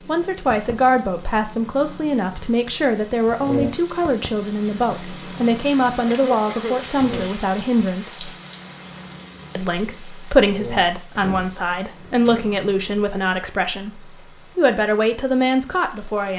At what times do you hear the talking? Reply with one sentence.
The talking can be heard from 0.1 to 8.3 s and from 9.6 to 16.3 s.